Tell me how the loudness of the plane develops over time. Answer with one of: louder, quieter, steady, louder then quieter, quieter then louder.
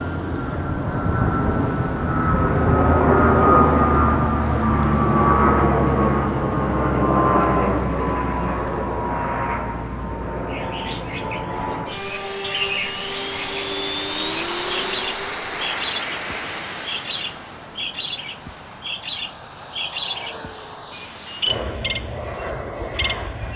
quieter.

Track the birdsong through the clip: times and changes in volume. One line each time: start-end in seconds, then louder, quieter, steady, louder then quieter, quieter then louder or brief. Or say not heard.
10.5-23.5 steady.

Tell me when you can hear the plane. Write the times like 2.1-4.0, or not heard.
0.0-23.5.